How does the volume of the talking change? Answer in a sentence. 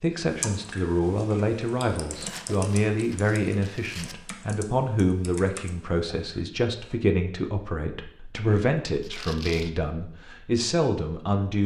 The volume of the talking stays about the same.